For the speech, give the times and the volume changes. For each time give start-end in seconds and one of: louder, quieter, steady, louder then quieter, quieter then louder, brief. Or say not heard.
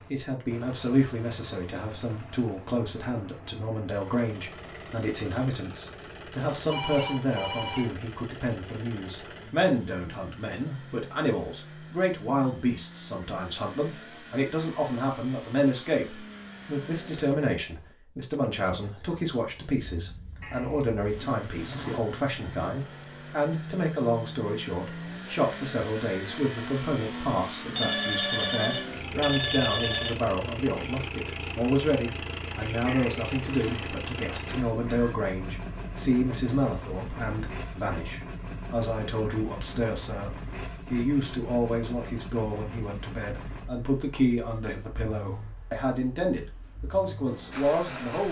0.1-48.2 steady.